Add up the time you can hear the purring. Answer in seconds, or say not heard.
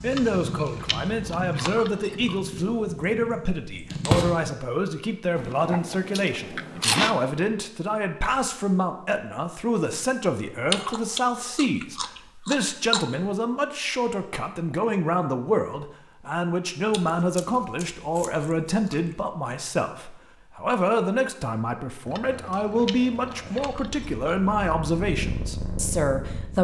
9 s.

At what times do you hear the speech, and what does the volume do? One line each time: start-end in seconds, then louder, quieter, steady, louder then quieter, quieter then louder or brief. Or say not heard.
0.0-26.6 steady.